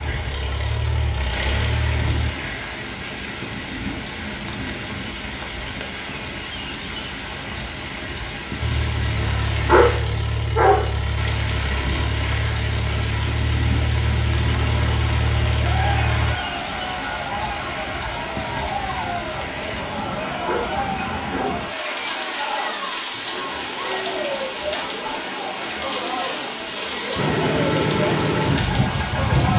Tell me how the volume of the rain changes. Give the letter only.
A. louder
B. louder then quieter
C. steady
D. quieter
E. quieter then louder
C.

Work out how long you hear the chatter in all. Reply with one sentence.
The chatter can be heard for 15 seconds in total.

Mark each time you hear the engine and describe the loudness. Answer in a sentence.
You can hear the engine briefly from 0.0 to 2.4 s; from 8.6 to 16.4 s, at a steady volume; and briefly from 27.1 to 29.5 s.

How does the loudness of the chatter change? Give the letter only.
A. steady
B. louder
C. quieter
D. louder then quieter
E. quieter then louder
A.